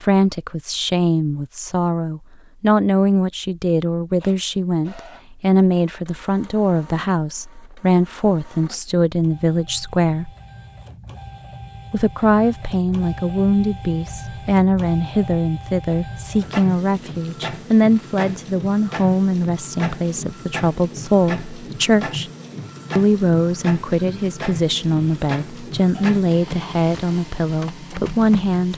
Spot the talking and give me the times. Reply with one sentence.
You can hear the talking from 0.0 to 10.3 s, from 11.9 to 22.3 s and from 22.9 to 28.7 s.